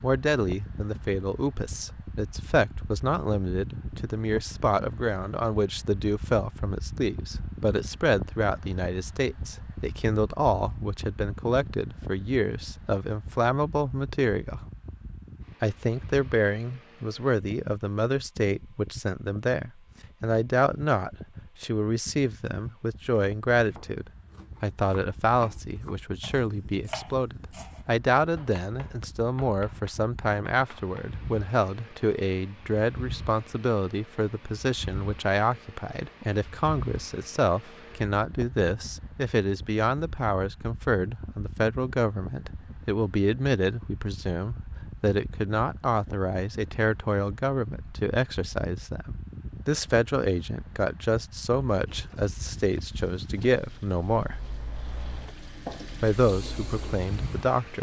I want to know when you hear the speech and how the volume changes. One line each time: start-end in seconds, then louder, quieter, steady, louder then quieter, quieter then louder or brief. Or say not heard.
0.0-14.6 steady
15.6-54.4 steady
56.0-57.7 brief.